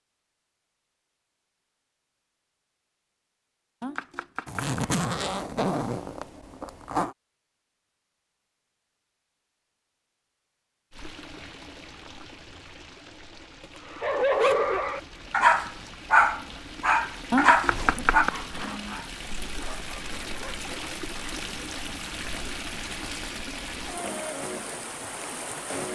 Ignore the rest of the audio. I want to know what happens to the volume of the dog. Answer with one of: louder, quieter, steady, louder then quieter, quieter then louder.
quieter.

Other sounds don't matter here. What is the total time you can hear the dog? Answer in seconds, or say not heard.
7 s.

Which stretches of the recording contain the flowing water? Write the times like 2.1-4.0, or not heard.
10.9-25.8.